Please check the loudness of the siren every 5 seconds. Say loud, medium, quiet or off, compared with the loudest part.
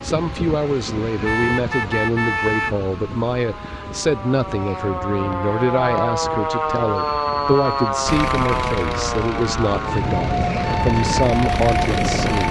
quiet, loud, loud.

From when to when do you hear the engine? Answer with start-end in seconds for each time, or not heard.
8.1-12.4.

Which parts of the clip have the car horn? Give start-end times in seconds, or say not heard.
1.2-2.8.